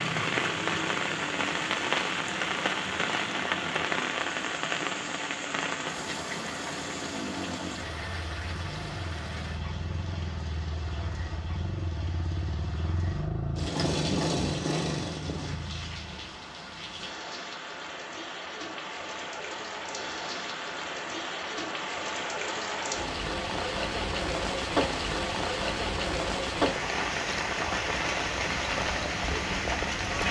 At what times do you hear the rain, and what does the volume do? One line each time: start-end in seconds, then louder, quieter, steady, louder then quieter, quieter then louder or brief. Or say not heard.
0.0-30.2 quieter then louder.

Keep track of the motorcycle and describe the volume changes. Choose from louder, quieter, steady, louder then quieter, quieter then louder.
louder.